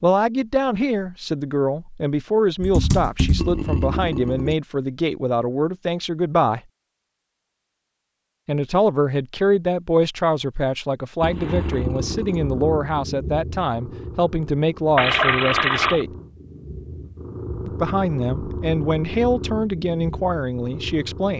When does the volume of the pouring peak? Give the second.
15 s.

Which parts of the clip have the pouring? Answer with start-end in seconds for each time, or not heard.
3.4-4.5, 11.2-12.4, 14.9-16.1.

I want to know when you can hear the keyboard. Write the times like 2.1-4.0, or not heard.
2.6-3.6.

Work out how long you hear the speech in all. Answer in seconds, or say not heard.
18 s.